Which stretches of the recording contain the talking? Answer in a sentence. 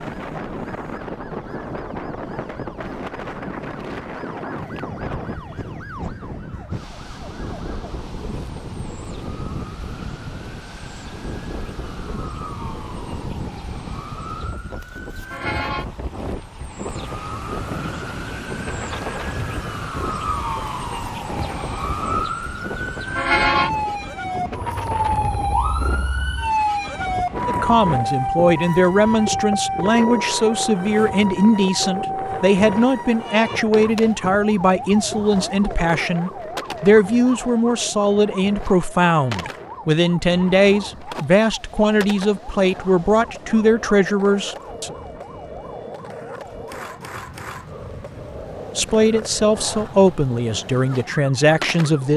You can hear the talking from 27.4 to 45.0 s and from 48.8 to 52.1 s.